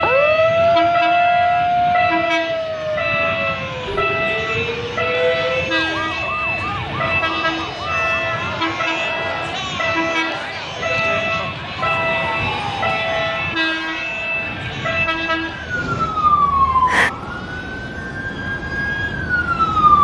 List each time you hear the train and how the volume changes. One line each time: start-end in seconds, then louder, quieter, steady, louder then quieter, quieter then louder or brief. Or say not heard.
0.0-19.9 quieter.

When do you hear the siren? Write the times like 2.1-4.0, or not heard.
0.0-8.2, 11.8-19.9.